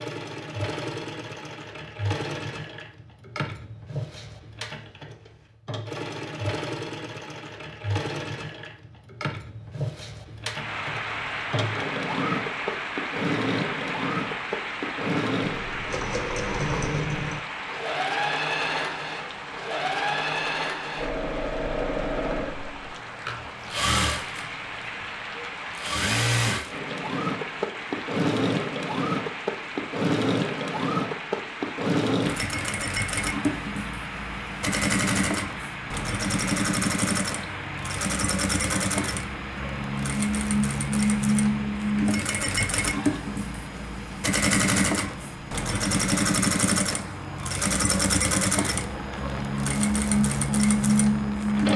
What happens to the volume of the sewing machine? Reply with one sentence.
The volume of the sewing machine goes up.